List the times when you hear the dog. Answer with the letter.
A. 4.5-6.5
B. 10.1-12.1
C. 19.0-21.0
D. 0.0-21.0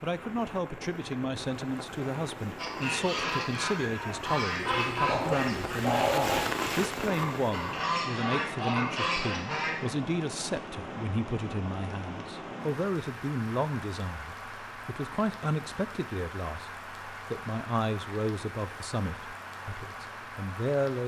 A.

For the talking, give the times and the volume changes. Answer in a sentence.
The talking can be heard from 0.0 to 21.0 s, at a steady volume.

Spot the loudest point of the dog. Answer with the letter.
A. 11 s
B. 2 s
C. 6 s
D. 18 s
C.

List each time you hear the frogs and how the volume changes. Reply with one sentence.
The frogs can't be heard in this clip.